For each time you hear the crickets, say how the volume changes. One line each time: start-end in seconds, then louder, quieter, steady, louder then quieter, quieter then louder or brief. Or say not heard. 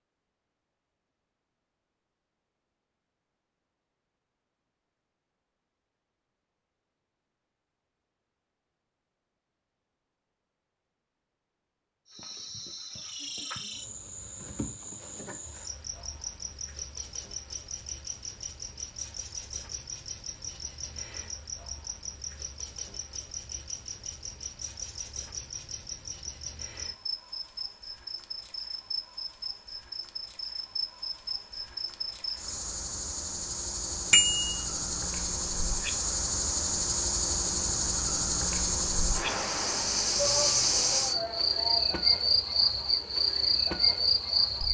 12.1-44.6 louder.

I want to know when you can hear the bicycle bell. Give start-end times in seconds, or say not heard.
34.1-34.5.